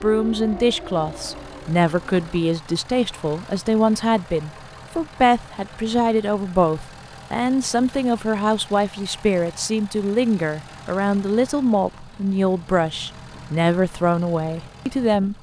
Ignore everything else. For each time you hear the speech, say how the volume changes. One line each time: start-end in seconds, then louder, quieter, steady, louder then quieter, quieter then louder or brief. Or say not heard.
0.0-15.3 steady.